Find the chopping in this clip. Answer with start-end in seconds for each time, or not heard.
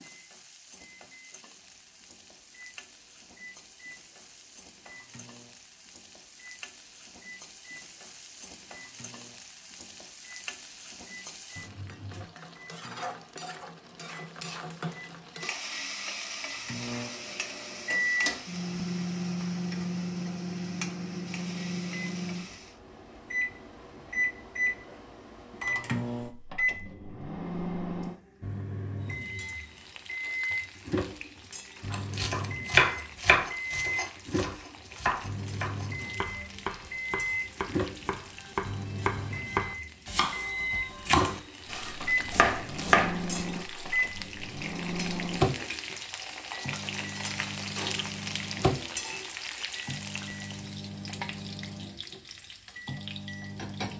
31.9-43.5.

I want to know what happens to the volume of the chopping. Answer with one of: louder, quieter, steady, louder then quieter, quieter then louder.
quieter then louder.